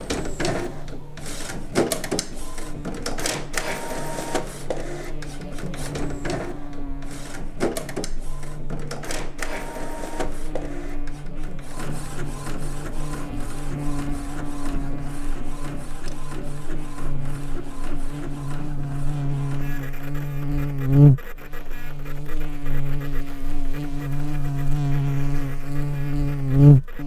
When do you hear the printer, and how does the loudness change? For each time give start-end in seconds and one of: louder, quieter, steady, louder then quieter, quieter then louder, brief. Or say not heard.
0.0-27.0 quieter.